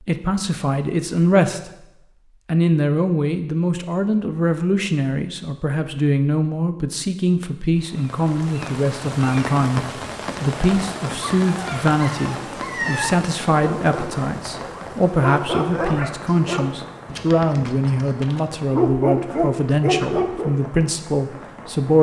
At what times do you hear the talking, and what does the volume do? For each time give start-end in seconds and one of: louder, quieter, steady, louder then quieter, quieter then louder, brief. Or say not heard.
0.0-1.7 brief
2.5-21.9 steady.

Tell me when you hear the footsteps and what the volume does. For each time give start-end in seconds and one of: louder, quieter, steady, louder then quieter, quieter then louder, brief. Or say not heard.
not heard.